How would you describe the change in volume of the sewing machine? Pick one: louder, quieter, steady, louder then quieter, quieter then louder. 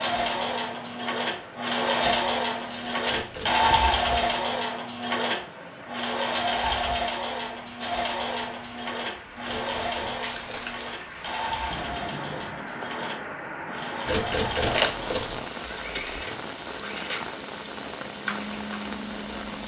quieter.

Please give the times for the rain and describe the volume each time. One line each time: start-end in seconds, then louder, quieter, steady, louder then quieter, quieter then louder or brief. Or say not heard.
0.0-19.6 louder.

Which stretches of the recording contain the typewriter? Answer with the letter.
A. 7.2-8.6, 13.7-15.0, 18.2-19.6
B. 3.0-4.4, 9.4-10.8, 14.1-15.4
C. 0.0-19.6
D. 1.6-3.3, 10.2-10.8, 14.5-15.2
B.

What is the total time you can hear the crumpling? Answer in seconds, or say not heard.
3 s.